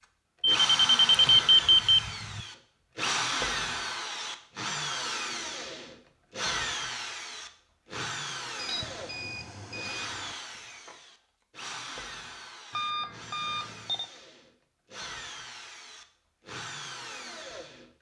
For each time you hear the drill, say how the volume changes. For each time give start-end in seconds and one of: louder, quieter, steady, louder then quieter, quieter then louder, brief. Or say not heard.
0.5-17.9 quieter.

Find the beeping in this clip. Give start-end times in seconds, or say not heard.
0.4-2.4, 8.6-10.3, 12.7-14.1.